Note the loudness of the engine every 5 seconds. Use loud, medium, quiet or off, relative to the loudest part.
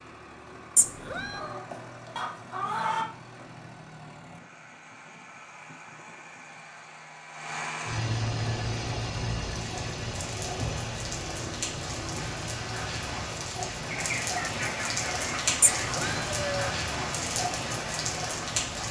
medium, loud, loud, medium.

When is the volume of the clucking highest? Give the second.
3 s.